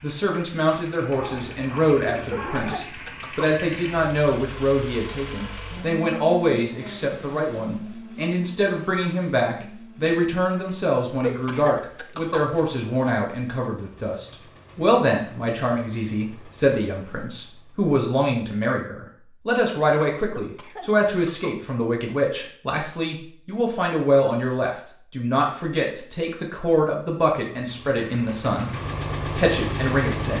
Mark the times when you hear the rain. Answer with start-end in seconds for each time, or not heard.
not heard.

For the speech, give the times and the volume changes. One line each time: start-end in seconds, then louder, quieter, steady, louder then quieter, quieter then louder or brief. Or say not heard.
0.0-30.3 steady.